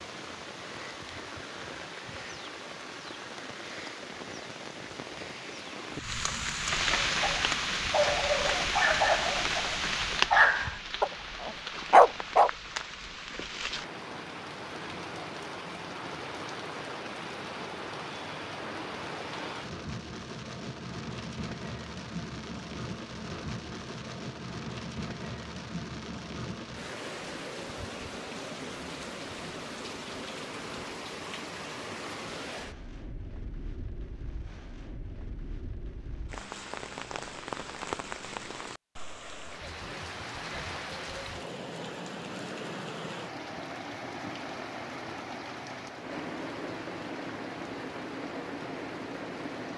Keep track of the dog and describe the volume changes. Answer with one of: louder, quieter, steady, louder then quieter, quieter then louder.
quieter then louder.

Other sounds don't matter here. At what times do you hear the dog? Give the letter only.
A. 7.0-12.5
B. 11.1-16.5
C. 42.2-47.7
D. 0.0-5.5
A.